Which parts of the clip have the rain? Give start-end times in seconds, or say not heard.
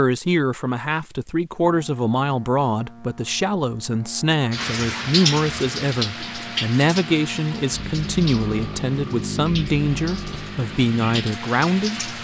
4.5-12.1.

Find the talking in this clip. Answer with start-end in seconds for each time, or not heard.
0.0-12.1.